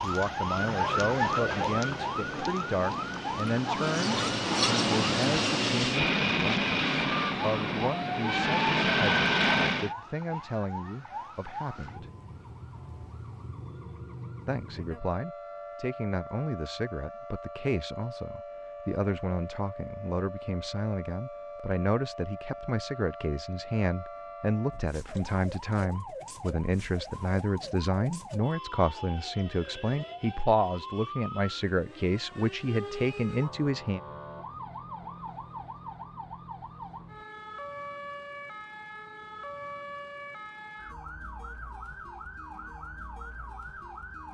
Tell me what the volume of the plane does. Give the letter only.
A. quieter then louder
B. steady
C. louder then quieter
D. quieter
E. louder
E.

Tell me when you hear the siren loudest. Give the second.
1 s.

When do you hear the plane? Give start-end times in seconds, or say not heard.
0.0-9.9.